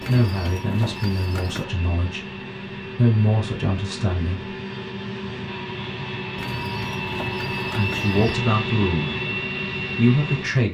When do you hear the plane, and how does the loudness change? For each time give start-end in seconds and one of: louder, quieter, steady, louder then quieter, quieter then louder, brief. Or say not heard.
0.0-10.6 louder.